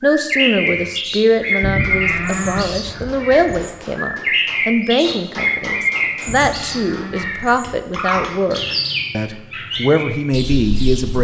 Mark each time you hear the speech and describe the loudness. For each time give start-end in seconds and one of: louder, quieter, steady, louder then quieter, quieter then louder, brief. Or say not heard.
0.0-11.2 steady.